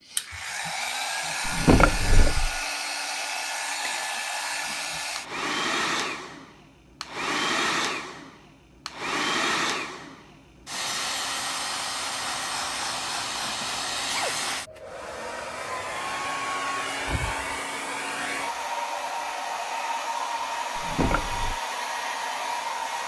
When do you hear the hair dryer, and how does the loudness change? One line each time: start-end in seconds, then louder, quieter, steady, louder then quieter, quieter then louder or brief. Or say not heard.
0.1-23.0 steady.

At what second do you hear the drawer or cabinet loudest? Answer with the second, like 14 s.
2 s.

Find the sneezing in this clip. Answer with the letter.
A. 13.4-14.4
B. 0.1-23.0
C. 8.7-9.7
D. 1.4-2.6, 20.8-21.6
A.